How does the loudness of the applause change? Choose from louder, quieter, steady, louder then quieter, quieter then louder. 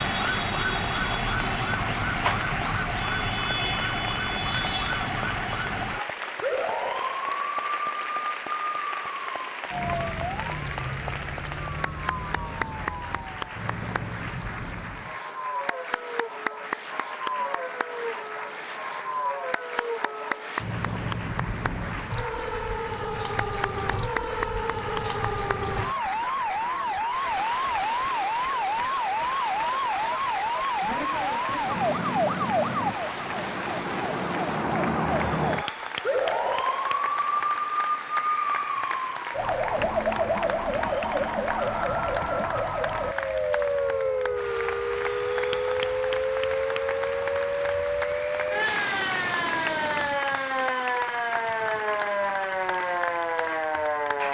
steady.